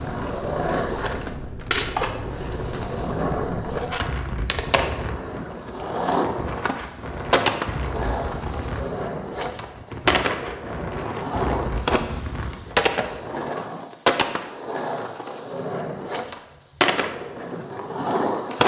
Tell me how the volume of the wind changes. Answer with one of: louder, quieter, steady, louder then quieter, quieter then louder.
steady.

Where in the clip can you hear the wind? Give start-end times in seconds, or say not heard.
0.0-13.4.